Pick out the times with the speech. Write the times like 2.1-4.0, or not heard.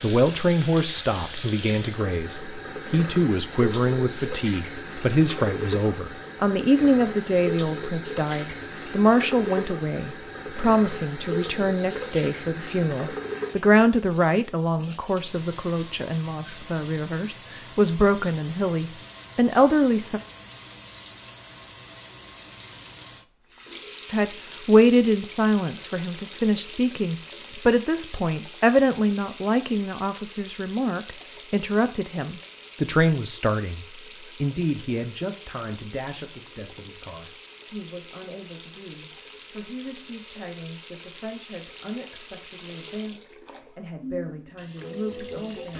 0.0-20.2, 24.1-45.7.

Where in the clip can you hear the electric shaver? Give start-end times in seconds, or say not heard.
not heard.